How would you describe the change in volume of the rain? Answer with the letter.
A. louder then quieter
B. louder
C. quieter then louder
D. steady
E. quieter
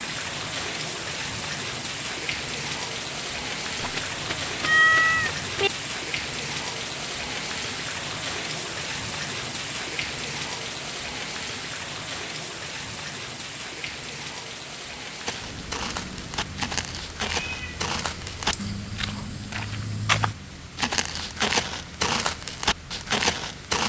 E.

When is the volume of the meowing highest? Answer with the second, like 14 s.
5 s.